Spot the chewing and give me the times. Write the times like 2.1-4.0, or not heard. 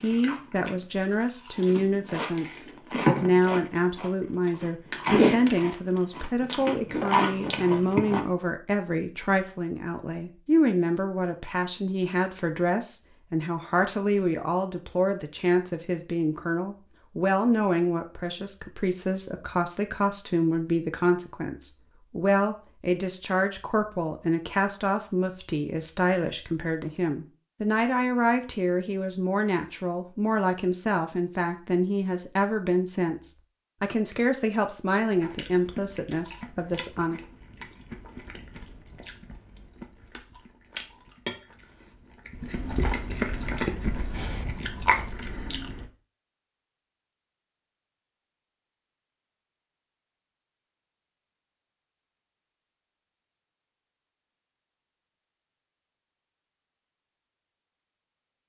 0.0-8.2, 35.1-45.9.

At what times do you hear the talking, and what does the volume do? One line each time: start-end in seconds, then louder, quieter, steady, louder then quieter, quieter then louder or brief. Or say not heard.
0.0-37.2 steady.